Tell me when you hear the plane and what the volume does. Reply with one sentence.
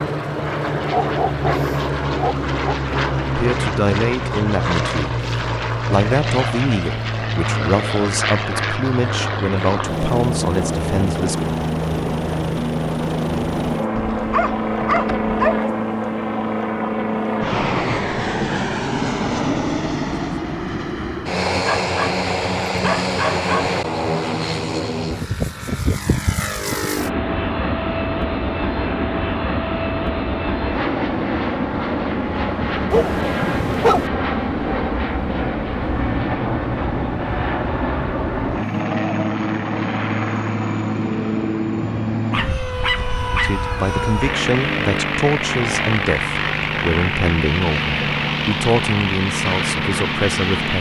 The plane can be heard from 0.0 to 50.7 s, at a steady volume.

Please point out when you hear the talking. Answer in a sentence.
You can hear the talking from 3.4 to 11.3 s and from 43.3 to 50.7 s.